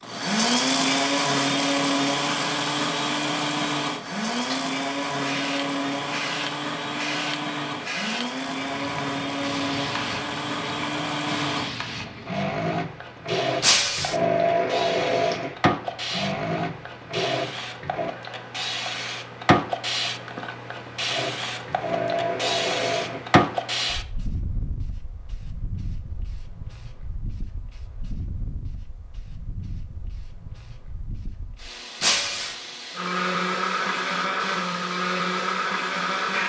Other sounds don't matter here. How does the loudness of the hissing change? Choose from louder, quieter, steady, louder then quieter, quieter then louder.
louder then quieter.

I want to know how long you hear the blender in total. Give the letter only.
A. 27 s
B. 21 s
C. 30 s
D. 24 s
D.